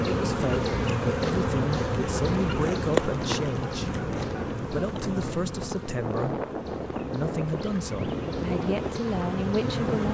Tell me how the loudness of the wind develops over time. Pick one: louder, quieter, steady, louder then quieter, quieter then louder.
steady.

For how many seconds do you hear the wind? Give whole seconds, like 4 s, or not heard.
10 s.